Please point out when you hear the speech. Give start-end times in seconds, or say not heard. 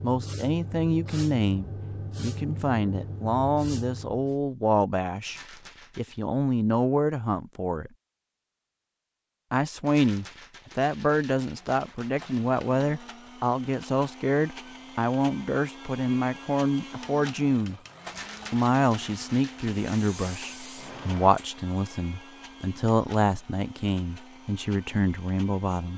0.0-7.9, 9.5-17.8, 18.5-25.9.